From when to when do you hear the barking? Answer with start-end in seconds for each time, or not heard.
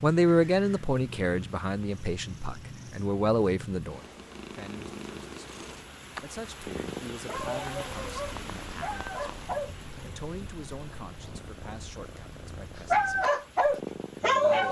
7.2-10.0, 12.9-14.6.